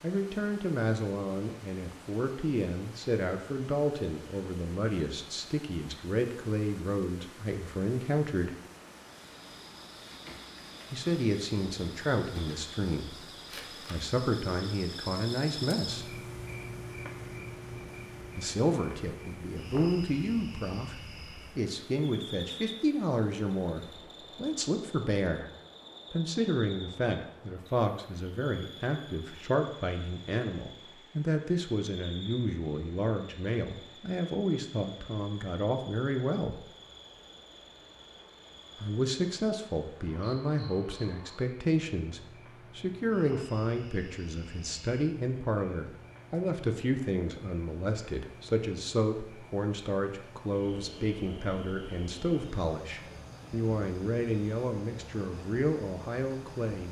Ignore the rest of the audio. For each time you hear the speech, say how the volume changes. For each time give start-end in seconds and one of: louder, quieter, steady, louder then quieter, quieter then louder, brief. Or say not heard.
0.0-8.6 steady
10.9-16.1 quieter then louder
18.4-25.4 steady
26.1-36.6 steady
38.8-56.8 steady.